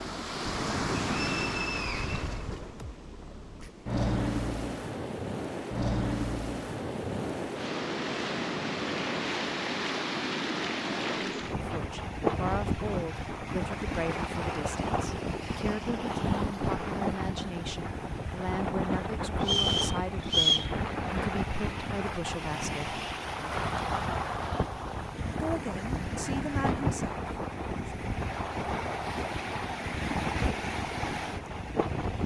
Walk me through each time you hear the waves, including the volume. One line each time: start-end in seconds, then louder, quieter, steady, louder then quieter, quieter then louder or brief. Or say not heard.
0.0-32.2 steady.